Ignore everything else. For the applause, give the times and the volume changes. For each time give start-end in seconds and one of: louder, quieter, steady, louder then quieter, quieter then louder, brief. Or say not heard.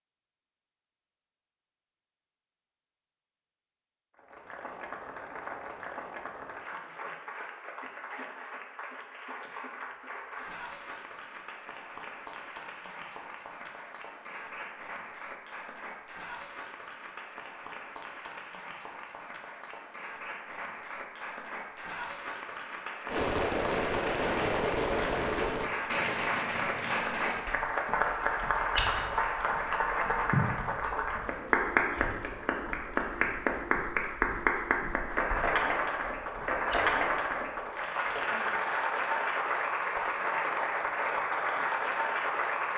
4.2-42.7 louder.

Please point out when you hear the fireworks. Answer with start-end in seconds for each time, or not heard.
23.1-27.4.